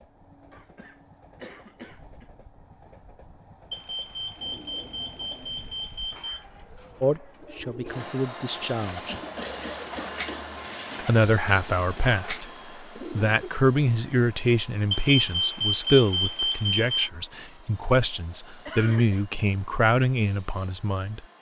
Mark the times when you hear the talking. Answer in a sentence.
You can hear the talking from 7.0 to 9.2 s and from 11.0 to 21.2 s.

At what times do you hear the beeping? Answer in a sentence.
You can hear the beeping from 3.7 to 6.5 s and from 14.9 to 17.1 s.